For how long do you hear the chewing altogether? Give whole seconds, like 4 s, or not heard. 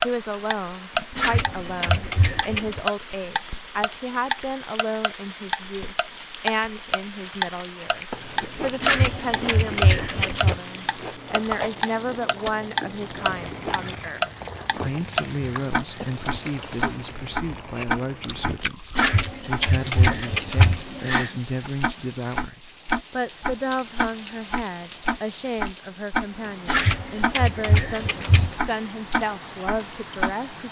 11 s.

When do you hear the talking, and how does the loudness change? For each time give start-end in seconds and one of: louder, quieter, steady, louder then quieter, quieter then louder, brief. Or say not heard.
0.0-30.6 steady.